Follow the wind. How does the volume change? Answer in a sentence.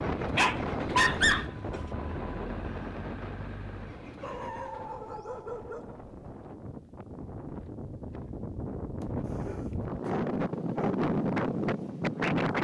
The loudness of the wind goes down, then up.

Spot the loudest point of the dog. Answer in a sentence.
The loudest moment of the dog is at 1 second.